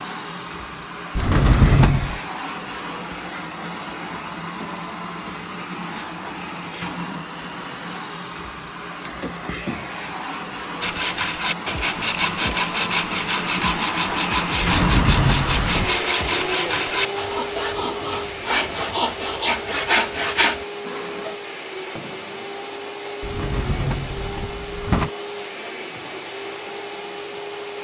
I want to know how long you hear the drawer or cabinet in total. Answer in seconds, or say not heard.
4 s.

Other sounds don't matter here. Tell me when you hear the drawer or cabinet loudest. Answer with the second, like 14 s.
2 s.